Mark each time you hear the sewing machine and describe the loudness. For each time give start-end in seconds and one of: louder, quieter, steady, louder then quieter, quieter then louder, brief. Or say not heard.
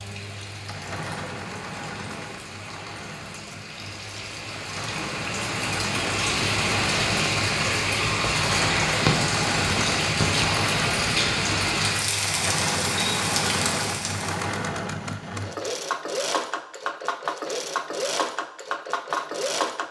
0.0-19.8 louder.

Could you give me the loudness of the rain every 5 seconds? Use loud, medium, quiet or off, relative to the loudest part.
quiet, loud, loud, off.